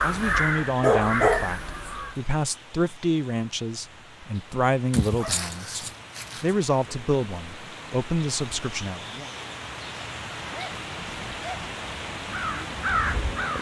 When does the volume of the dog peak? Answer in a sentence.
The volume of the dog peaks at 1 second.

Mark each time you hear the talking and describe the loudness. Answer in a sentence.
You can hear the talking from 0.0 to 9.2 s, at a steady volume.